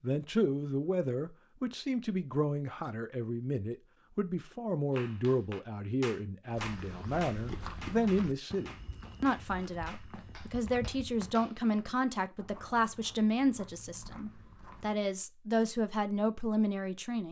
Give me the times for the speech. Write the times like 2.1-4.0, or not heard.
0.0-17.2.